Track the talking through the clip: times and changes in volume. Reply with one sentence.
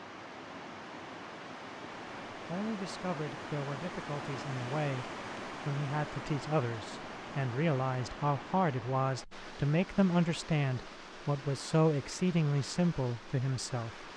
The talking can be heard from 2.3 to 14.1 s, getting louder.